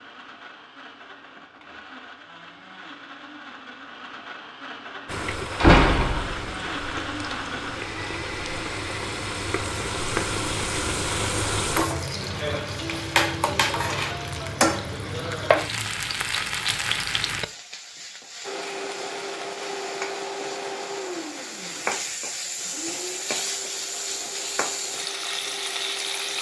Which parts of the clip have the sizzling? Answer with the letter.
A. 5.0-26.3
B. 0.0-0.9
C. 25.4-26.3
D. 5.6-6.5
A.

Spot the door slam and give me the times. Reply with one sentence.
You can hear the door slam from 5.6 to 6.5 s.